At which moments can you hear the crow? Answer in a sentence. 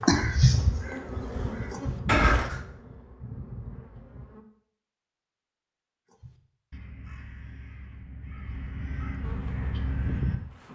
The crow can be heard from 0.0 to 2.6 s and from 6.1 to 10.4 s.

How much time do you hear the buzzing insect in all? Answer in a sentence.
You can hear the buzzing insect for 6 seconds altogether.